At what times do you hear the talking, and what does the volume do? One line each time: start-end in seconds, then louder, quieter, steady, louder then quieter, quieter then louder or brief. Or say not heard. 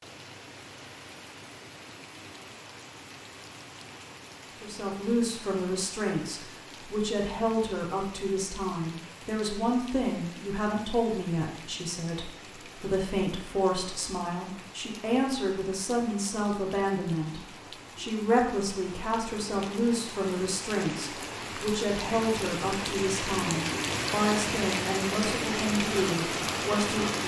4.6-27.1 steady.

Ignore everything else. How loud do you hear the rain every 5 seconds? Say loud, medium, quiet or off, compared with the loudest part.
quiet, quiet, quiet, quiet, loud, loud.